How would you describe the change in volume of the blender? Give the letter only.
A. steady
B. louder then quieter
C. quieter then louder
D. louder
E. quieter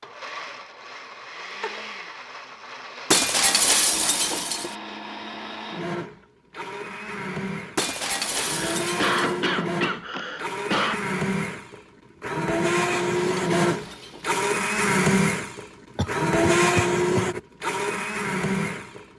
D.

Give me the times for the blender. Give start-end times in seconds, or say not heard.
0.0-19.1.